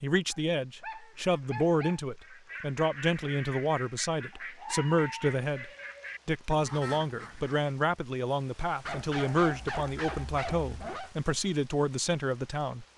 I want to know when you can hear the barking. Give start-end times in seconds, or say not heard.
0.3-2.0, 4.3-5.2, 8.8-11.1.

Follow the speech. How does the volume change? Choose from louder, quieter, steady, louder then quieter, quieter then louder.
steady.